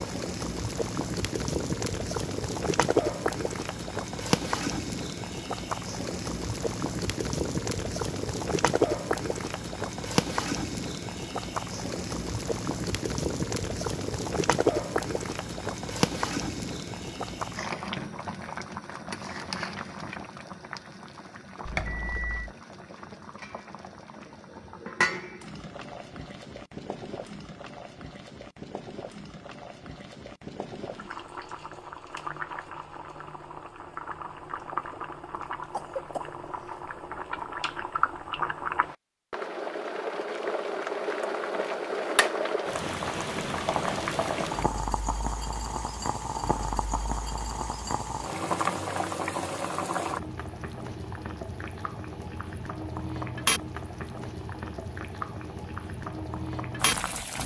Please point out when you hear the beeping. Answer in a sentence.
The beeping can be heard from 21.6 to 22.6 s.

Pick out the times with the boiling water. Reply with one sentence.
The boiling water can be heard from 0.0 to 57.4 s.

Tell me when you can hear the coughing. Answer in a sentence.
You can hear the coughing from 35.6 to 36.8 s.